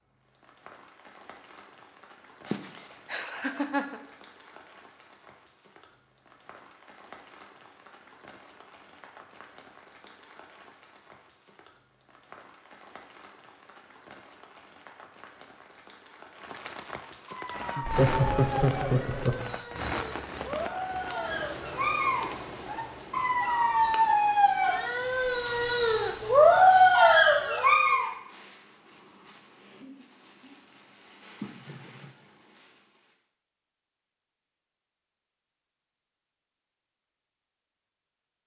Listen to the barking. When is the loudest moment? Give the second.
27 s.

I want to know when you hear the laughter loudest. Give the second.
18 s.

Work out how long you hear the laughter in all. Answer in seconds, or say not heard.
4 s.